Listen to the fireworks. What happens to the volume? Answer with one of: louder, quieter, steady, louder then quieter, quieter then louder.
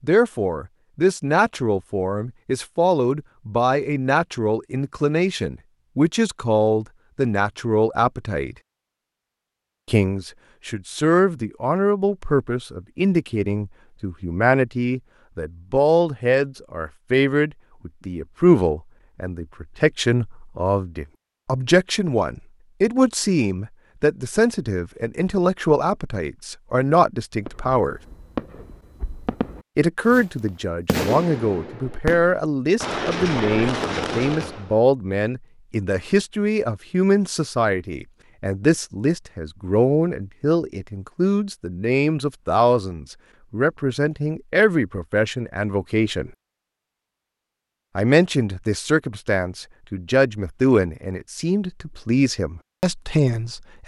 louder.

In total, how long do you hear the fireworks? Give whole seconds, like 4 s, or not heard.
7 s.